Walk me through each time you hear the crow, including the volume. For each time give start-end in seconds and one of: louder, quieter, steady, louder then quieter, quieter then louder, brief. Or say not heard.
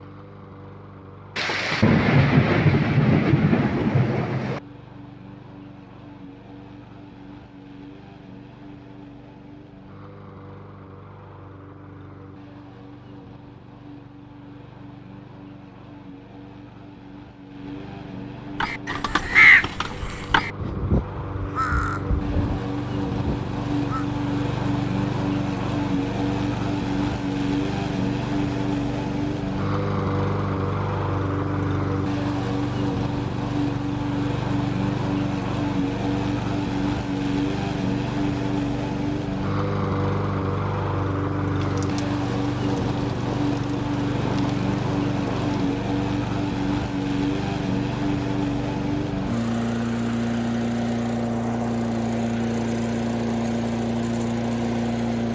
18.6-24.1 quieter.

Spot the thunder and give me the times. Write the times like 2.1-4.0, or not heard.
1.4-4.6, 41.6-45.8.